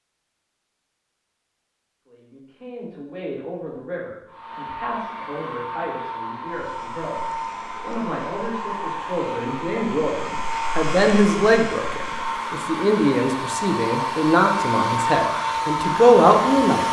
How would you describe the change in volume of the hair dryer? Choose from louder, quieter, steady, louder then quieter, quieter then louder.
louder.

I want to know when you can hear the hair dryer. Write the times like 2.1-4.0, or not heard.
4.2-16.8.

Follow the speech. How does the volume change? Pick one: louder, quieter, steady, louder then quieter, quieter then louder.
louder.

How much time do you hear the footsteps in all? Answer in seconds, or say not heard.
not heard.